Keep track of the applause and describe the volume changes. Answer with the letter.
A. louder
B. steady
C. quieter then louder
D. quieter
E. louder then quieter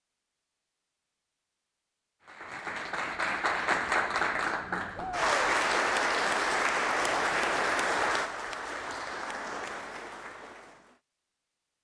D.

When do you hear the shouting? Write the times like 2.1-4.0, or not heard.
5.0-5.5.